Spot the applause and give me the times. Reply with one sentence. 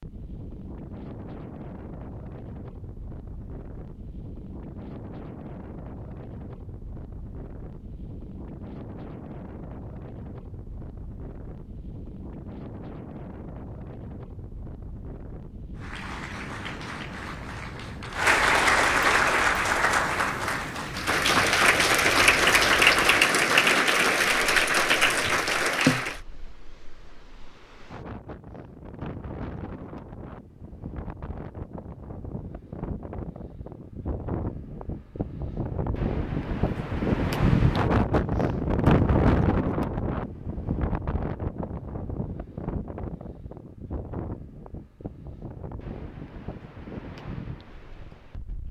The applause can be heard from 15.8 to 26.2 s.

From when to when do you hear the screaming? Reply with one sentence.
You can't hear the screaming here.